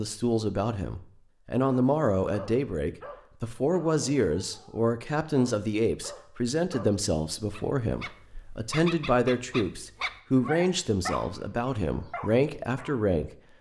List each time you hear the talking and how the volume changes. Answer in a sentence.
You can hear the talking from 0.0 to 13.3 s, at a steady volume.